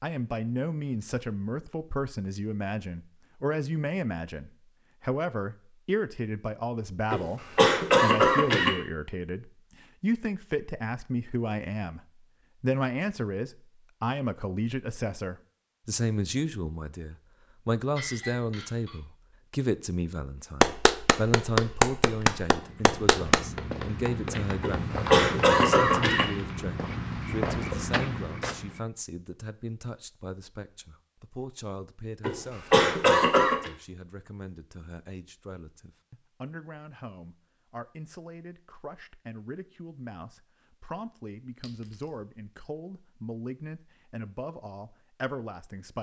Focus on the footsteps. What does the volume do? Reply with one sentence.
The loudness of the footsteps goes up.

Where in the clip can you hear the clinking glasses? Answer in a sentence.
The clinking glasses can be heard from 17.9 to 19.0 s and from 41.6 to 42.2 s.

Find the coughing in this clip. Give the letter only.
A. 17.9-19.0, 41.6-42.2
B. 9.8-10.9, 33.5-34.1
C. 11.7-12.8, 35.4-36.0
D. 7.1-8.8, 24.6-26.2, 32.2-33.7
D.